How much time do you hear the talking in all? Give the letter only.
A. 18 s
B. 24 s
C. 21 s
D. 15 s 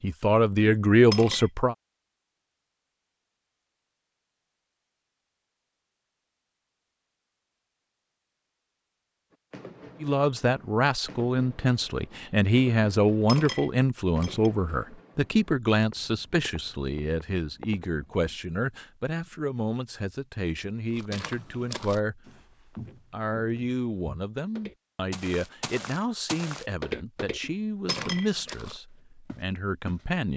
C.